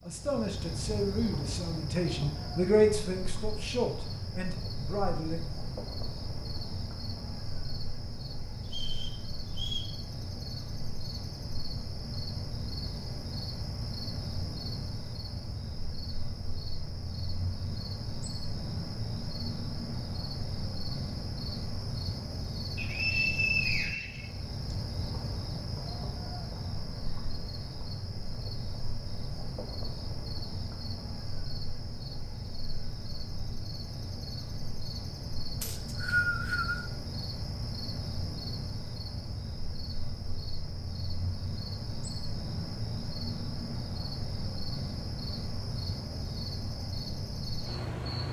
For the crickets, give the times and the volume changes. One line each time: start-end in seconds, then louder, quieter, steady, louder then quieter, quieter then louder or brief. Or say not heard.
0.0-48.2 steady.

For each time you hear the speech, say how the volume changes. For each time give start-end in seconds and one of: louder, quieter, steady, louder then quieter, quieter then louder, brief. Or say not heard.
0.0-5.4 louder then quieter.